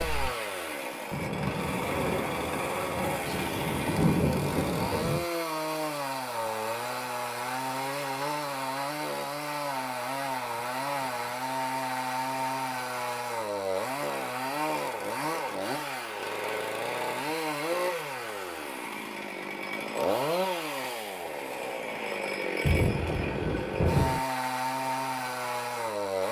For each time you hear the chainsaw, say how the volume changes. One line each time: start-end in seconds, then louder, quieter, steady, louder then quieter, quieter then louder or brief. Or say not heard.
0.0-26.2 steady.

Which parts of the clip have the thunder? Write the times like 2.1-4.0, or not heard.
1.1-5.2, 22.6-24.2.